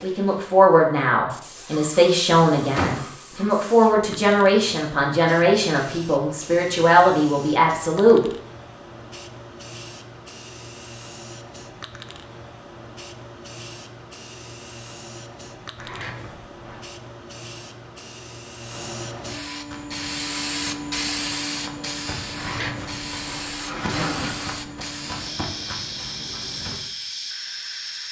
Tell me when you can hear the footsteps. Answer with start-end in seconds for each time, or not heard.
19.6-26.8.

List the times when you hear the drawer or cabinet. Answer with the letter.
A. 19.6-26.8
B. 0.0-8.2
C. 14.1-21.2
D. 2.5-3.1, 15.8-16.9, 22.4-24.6
D.